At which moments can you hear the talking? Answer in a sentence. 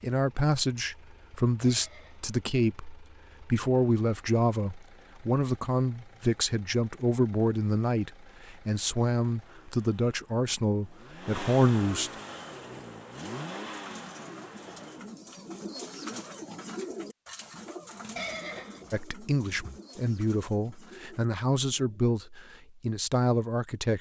The talking can be heard from 0.0 to 12.1 s and from 18.9 to 23.9 s.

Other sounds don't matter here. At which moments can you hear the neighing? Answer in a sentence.
The neighing can be heard from 1.6 to 2.4 s and from 18.1 to 19.0 s.